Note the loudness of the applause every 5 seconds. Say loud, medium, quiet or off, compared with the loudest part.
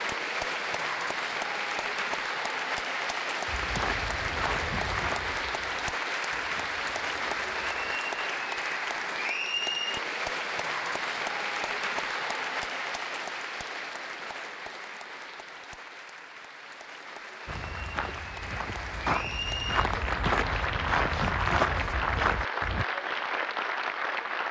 loud, loud, loud, medium, loud.